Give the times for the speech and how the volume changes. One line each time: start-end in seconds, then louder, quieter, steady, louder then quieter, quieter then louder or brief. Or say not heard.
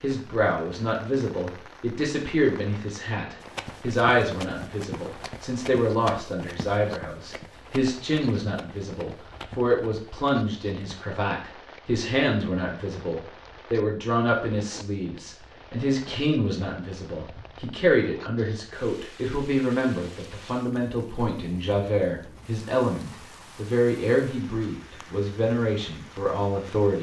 0.0-26.9 steady.